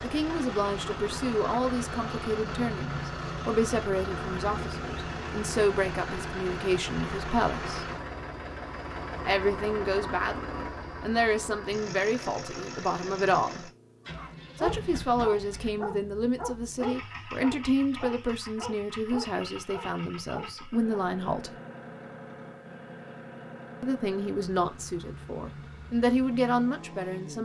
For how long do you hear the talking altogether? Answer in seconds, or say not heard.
23 s.